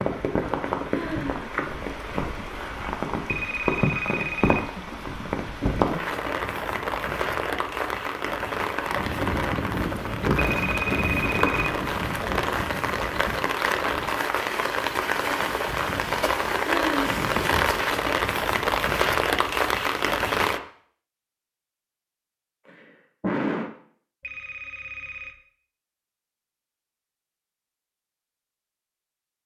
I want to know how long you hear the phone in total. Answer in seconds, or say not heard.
4 s.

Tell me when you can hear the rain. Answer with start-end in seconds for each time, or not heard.
0.0-20.6.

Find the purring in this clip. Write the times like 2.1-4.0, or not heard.
not heard.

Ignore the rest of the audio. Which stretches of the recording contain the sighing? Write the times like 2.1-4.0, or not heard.
0.9-1.5, 16.6-17.1, 22.6-23.7.